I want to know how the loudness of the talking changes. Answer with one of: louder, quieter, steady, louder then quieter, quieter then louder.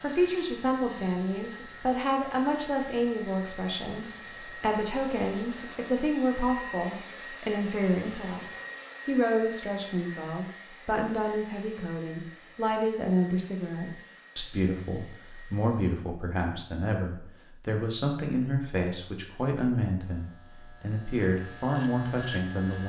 steady.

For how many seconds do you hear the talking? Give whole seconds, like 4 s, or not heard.
23 s.